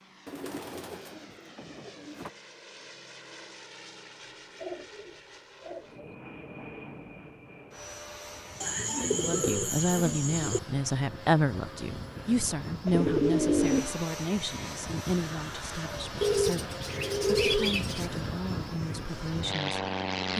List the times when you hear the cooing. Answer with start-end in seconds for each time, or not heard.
0.2-2.3, 4.2-6.2, 8.6-10.6, 12.8-13.9, 16.2-18.1.